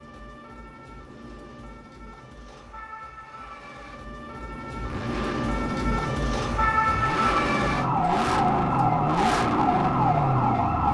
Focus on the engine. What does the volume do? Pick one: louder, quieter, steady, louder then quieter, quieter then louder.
louder.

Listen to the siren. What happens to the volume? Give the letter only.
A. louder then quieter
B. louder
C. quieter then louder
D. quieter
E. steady
B.